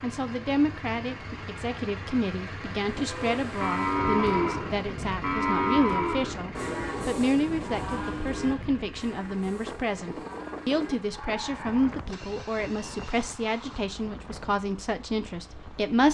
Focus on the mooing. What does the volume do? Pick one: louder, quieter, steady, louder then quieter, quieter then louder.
quieter.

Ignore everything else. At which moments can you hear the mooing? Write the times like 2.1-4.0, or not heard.
3.0-11.8.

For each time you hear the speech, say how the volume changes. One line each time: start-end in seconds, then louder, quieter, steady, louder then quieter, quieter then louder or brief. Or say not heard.
0.0-16.0 steady.